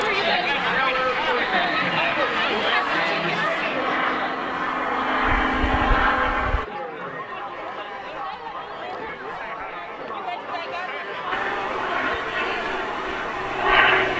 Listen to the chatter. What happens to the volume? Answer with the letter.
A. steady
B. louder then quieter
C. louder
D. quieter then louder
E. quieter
E.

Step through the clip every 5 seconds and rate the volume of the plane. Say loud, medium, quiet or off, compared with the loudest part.
medium, loud, loud.